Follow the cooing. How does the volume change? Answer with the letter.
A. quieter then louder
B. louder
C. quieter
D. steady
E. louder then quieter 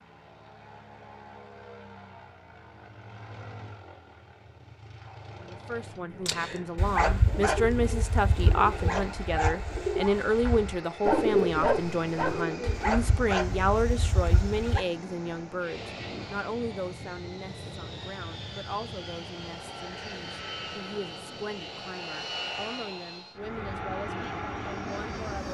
E.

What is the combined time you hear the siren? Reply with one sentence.
You can't hear the siren here.